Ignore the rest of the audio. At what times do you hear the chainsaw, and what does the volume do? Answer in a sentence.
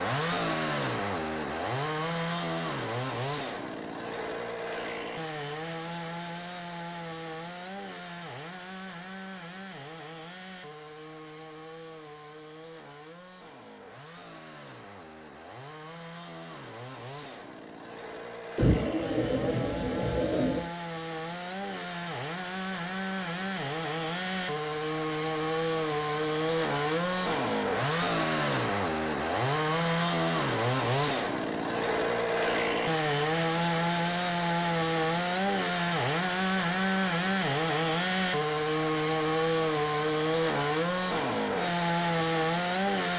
You can hear the chainsaw from 0.0 to 43.1 s, getting quieter then louder.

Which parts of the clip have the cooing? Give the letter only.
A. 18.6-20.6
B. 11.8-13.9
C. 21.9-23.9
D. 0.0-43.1
A.